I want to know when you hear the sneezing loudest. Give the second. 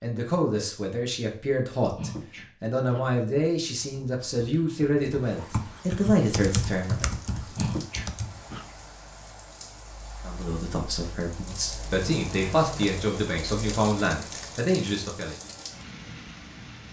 8 s.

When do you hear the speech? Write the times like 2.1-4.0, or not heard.
0.0-7.1, 10.2-15.3.